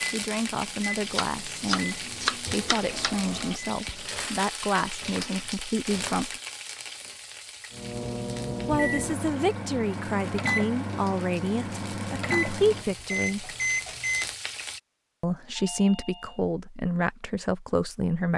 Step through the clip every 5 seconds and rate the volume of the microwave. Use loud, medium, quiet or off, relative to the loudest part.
medium, loud, loud, off.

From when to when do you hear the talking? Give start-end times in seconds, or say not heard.
0.1-6.4, 8.7-13.5, 15.2-18.3.